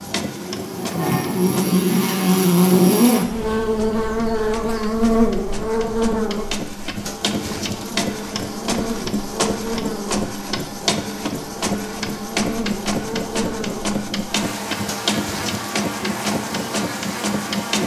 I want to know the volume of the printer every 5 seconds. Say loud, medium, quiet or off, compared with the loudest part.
medium, loud, loud, loud.